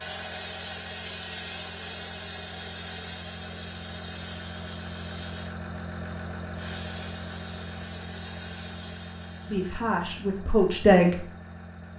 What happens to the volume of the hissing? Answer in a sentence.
The volume of the hissing goes down.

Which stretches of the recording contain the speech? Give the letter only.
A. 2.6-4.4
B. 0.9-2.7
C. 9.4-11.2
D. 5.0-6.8
C.